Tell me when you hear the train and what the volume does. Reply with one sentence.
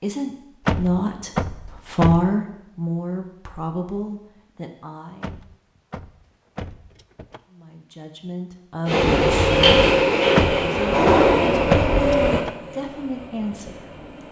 The train can be heard from 8.8 to 14.2 s, getting quieter.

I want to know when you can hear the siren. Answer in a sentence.
The siren can't be heard in this clip.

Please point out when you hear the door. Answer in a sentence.
The door can be heard from 0.7 to 2.3 s, from 5.2 to 7.4 s and from 10.3 to 12.6 s.